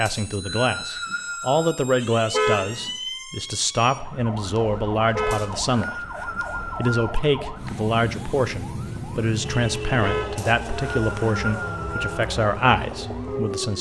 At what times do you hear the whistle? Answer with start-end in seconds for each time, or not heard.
0.1-1.7, 5.3-7.2, 10.3-12.2.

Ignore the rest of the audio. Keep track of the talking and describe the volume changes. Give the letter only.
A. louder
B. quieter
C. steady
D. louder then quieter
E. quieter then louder
C.